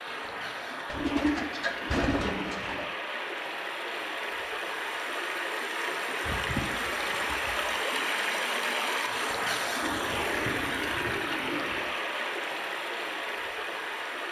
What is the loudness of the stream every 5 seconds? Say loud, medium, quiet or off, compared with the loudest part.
medium, loud, loud.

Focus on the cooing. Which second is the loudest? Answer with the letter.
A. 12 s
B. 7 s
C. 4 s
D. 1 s
D.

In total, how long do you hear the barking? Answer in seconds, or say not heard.
not heard.